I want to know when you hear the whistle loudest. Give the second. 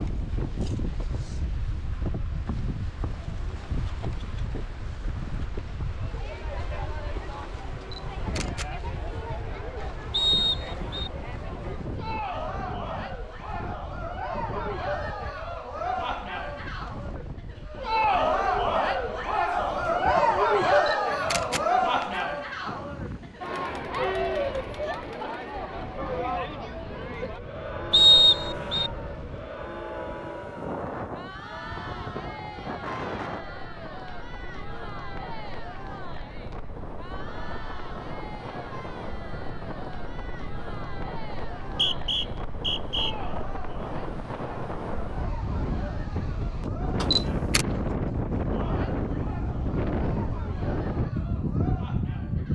28 s.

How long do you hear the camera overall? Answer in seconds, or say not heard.
3 s.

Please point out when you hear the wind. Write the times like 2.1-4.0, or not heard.
0.0-52.4.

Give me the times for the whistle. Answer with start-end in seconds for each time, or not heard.
10.1-11.1, 27.9-28.9, 41.6-43.1.